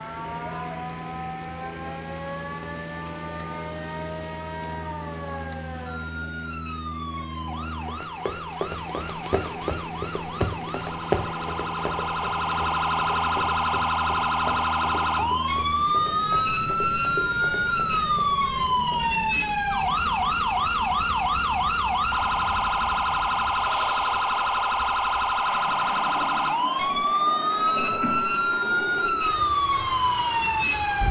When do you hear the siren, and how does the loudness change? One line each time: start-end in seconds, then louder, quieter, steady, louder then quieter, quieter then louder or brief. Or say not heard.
0.0-31.0 louder.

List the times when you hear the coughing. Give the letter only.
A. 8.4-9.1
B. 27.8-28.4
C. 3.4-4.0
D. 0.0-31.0
B.